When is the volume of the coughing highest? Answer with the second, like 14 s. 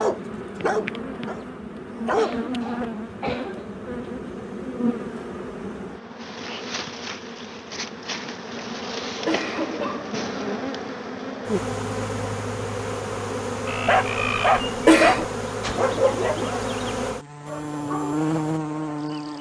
15 s.